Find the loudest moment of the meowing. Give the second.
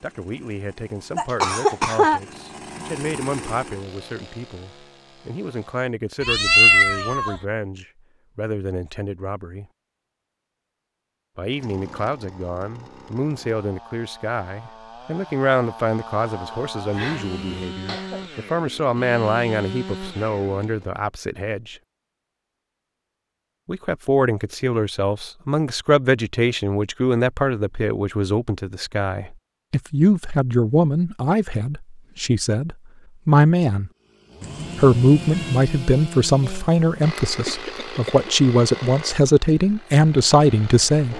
7 s.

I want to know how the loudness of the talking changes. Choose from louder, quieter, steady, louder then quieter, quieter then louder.
louder.